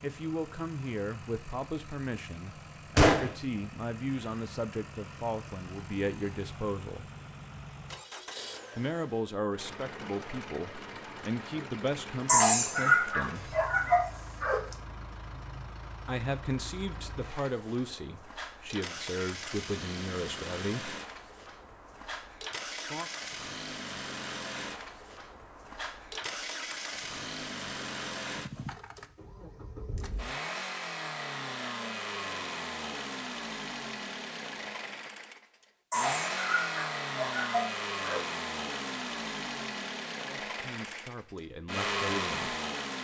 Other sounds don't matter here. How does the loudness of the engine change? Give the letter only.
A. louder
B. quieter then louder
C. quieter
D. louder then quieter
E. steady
A.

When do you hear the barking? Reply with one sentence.
The barking can be heard from 12.2 to 14.6 s and from 35.9 to 38.2 s.